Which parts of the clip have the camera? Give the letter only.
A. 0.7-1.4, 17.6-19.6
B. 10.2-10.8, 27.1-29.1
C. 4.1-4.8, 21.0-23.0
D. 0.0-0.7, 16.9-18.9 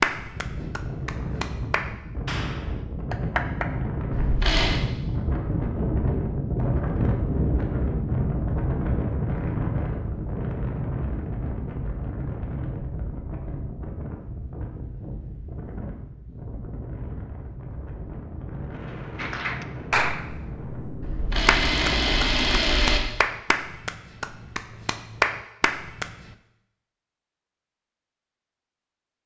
C.